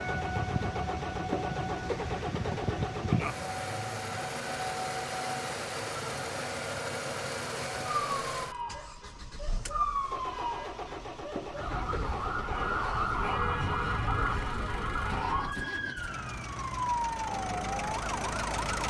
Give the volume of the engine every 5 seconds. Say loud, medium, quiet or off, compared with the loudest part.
loud, loud, medium, loud.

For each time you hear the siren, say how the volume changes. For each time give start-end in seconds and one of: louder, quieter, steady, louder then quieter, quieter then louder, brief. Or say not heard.
0.0-18.8 quieter then louder.